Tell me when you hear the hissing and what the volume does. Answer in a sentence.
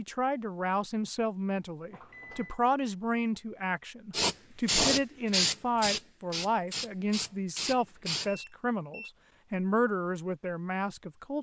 The hissing can be heard from 4.1 to 8.3 s, getting quieter.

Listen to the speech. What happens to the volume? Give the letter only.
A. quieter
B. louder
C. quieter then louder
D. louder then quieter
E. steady
E.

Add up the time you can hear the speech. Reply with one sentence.
You can hear the speech for 11 seconds altogether.